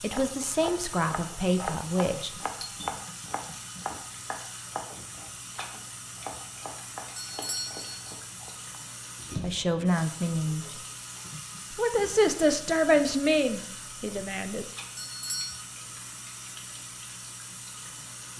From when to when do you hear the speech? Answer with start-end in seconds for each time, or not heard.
0.0-2.3, 9.3-10.7, 11.8-14.7.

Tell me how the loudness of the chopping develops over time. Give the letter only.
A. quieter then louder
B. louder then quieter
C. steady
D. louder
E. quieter
E.